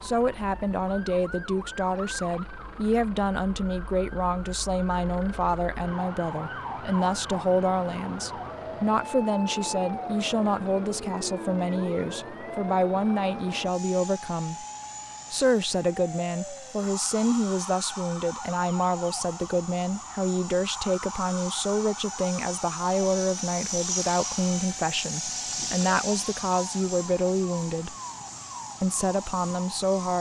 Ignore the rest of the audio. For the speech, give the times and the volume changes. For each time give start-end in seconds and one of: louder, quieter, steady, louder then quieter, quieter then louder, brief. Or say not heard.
0.0-14.7 steady
15.3-27.9 steady
28.8-30.1 brief.